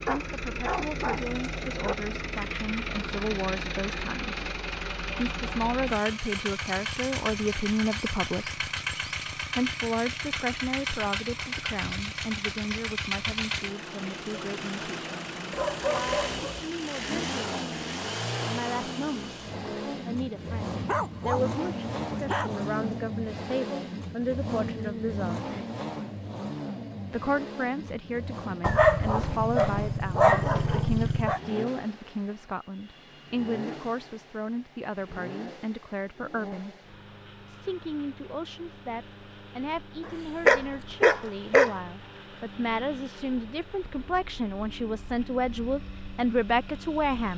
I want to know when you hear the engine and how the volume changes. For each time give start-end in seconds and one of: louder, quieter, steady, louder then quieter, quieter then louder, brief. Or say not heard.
0.0-47.3 quieter.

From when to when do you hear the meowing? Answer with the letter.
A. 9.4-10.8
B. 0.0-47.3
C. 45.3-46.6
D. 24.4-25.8
D.